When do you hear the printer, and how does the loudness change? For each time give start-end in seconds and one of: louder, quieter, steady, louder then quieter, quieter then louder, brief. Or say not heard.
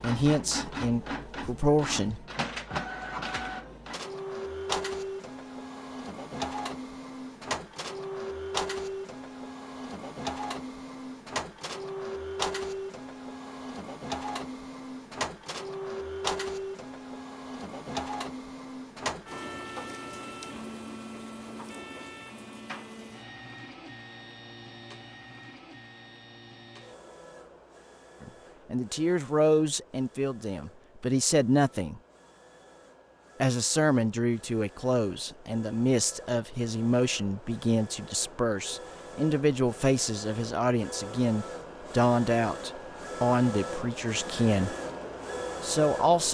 0.0-46.2 quieter then louder.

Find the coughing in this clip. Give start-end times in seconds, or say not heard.
not heard.